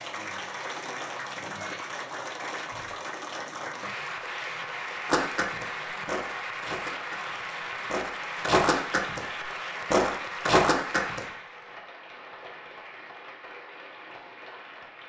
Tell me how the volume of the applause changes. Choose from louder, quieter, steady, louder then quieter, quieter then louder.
quieter.